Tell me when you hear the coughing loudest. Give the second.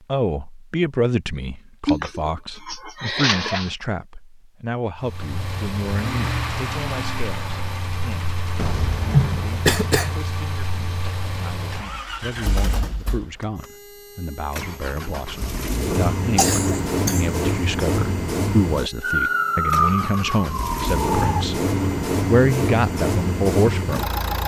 9 s.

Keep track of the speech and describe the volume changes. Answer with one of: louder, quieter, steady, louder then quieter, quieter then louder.
quieter then louder.